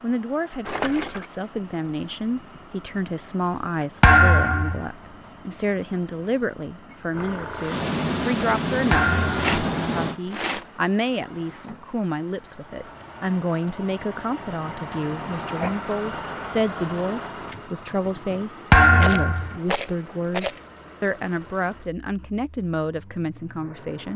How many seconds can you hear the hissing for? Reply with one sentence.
The hissing can be heard for 3 seconds in total.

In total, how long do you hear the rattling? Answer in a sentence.
The rattling can be heard for 4 seconds in total.